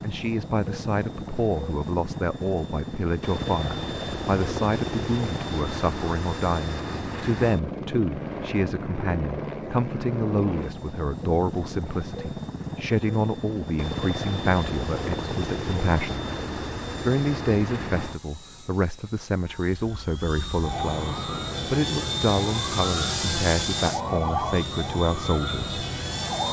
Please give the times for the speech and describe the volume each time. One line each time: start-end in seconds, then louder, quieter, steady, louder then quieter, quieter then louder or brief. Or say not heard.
0.0-16.2 steady
17.0-25.8 steady.